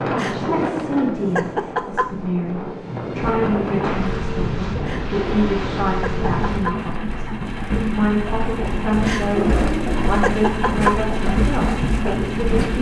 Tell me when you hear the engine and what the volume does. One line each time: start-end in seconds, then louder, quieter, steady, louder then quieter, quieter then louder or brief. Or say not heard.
3.2-12.7 louder.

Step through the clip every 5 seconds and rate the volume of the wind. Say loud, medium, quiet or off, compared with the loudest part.
loud, loud, off.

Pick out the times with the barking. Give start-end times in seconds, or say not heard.
0.1-2.1, 4.8-6.8, 9.1-11.0.